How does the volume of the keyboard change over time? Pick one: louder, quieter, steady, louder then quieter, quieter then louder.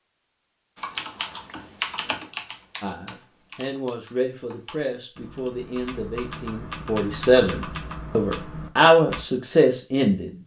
quieter then louder.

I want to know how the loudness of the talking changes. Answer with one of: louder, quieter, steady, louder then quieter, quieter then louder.
louder.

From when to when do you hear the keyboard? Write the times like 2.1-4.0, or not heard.
0.8-9.2.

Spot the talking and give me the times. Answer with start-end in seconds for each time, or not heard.
2.8-10.3.